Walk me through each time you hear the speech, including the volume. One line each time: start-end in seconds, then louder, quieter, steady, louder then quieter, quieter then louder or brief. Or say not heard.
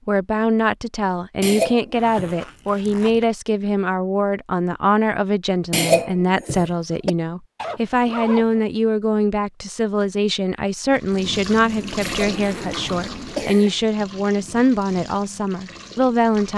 0.1-16.5 steady.